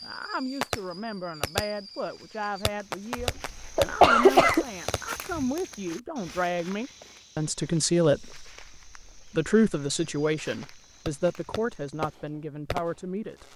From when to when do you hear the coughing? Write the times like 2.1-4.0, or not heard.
3.2-4.7.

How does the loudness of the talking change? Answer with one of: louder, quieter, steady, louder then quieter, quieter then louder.
louder then quieter.